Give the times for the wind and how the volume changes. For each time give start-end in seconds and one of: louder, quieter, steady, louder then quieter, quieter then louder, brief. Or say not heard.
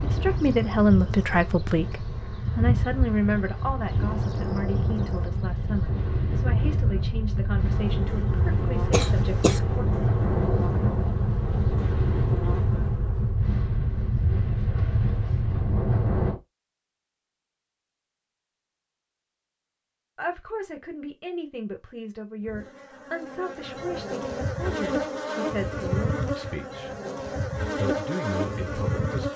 0.0-16.4 louder.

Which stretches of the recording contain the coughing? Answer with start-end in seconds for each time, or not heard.
8.9-9.6.